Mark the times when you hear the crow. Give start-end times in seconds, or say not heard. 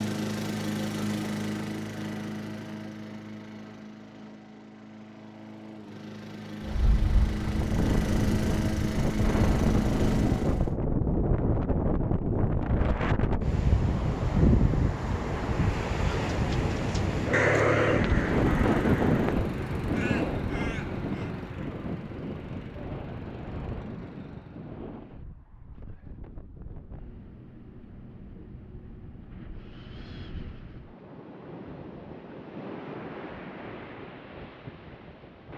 16.1-21.3.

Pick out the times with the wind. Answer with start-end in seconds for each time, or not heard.
6.6-35.5.